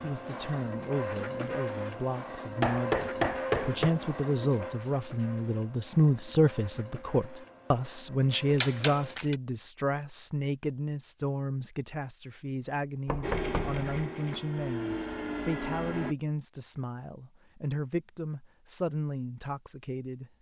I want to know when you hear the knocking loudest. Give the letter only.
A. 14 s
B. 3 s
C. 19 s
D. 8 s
B.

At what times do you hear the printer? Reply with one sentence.
You can hear the printer from 0.0 to 9.2 s and from 13.2 to 16.1 s.